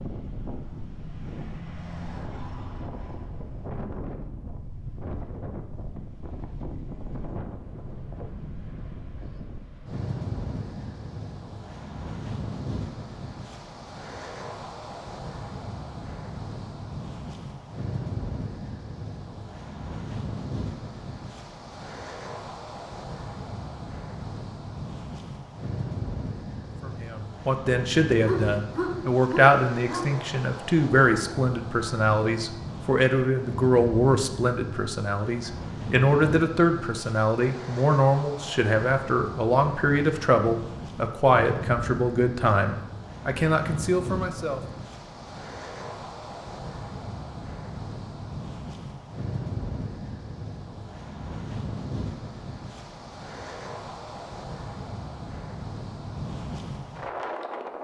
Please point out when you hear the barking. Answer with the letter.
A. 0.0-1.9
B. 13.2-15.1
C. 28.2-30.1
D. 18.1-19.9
C.